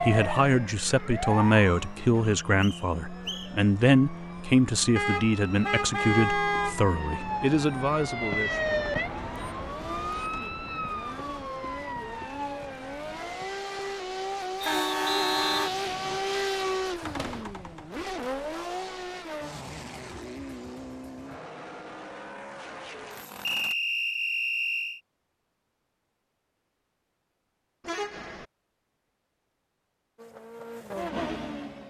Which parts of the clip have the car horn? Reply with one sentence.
You can hear the car horn from 5.0 to 6.8 s, from 14.6 to 15.7 s and from 27.9 to 28.4 s.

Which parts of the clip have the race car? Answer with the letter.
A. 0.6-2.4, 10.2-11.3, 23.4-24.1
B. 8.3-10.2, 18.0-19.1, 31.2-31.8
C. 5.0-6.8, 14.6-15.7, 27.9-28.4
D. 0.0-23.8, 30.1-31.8
D.